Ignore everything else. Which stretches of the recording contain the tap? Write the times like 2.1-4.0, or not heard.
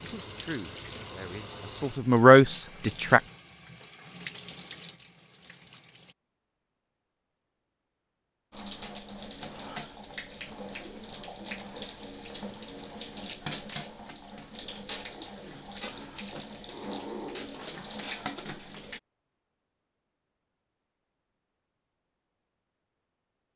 0.0-6.2, 8.5-19.0.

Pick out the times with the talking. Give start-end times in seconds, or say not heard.
0.0-3.2.